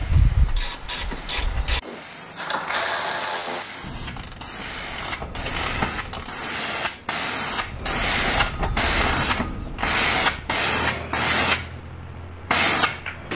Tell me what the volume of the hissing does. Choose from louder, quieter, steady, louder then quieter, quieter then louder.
louder.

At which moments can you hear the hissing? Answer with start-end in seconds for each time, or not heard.
0.0-13.3.